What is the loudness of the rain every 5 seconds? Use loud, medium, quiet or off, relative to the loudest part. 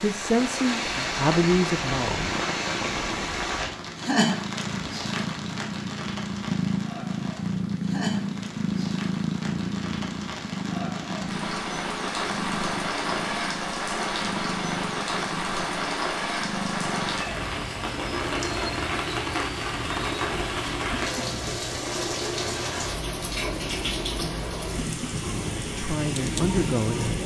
loud, medium, loud, loud, loud, loud.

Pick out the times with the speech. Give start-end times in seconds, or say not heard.
0.0-2.4, 25.8-27.1.